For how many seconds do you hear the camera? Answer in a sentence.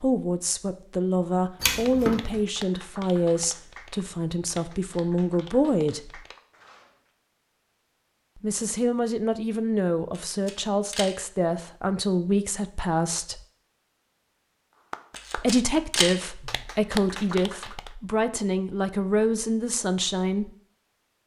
The camera can be heard for 3 seconds in total.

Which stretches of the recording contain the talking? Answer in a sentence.
The talking can be heard from 0.0 to 6.2 s, from 8.4 to 13.4 s and from 15.3 to 20.5 s.